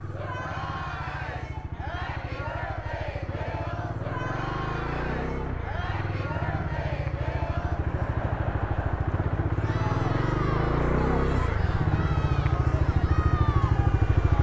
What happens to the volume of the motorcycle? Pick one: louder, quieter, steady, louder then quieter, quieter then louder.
louder.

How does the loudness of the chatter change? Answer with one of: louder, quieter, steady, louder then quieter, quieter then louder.
steady.